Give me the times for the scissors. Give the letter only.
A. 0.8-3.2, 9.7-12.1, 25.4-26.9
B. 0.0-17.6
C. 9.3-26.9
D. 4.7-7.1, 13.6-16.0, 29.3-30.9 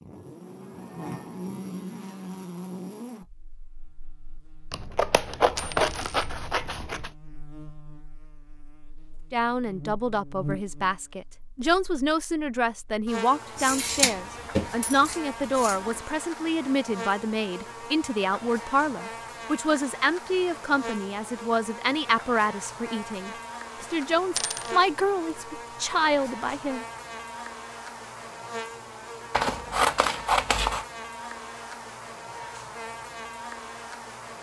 D.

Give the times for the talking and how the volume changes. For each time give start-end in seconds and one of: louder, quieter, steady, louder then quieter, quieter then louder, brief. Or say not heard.
9.3-26.9 steady.